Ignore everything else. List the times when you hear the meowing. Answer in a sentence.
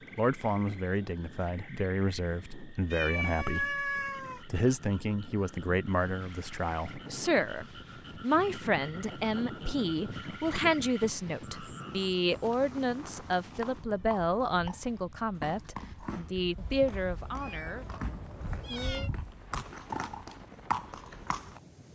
The meowing can be heard from 2.9 to 4.4 s and from 16.6 to 19.1 s.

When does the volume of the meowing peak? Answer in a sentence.
The volume of the meowing peaks at 4 seconds.